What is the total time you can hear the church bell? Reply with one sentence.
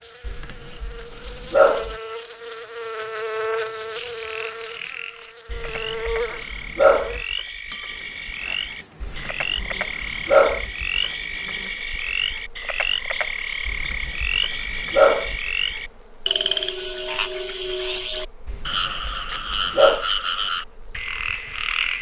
The church bell can't be heard in this clip.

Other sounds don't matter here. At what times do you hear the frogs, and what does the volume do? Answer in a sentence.
The frogs can be heard from 4.0 to 21.9 s, getting louder.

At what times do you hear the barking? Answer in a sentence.
The barking can be heard from 0.2 to 1.9 s, from 5.5 to 7.2 s, from 9.0 to 10.7 s, from 13.7 to 15.3 s and from 18.4 to 20.1 s.